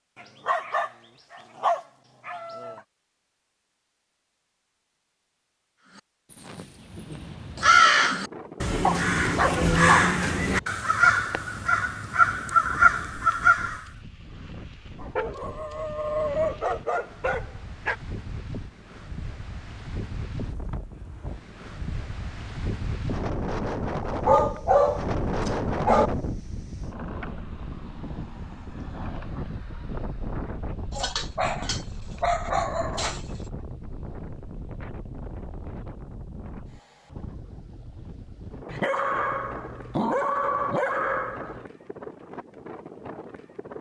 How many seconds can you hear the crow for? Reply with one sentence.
You can hear the crow for 8 seconds altogether.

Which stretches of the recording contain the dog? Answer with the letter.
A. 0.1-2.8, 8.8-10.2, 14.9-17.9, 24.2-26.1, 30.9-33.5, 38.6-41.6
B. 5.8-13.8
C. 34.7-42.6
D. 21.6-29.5
A.